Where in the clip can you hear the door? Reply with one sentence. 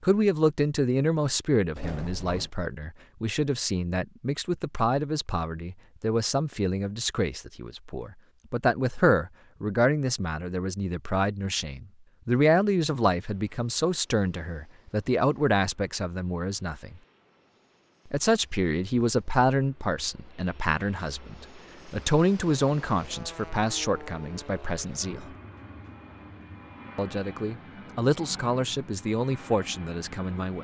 You can hear the door from 1.8 to 2.5 s.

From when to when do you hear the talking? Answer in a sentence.
You can hear the talking from 0.0 to 17.0 s, from 18.1 to 25.3 s and from 26.9 to 30.5 s.